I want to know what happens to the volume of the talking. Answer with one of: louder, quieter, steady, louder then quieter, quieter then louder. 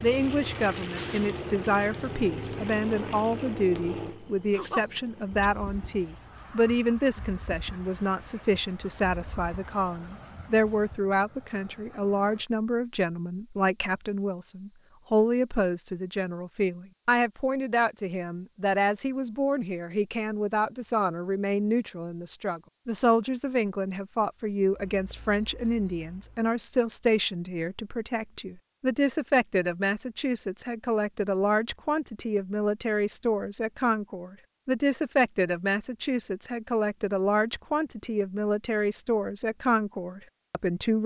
steady.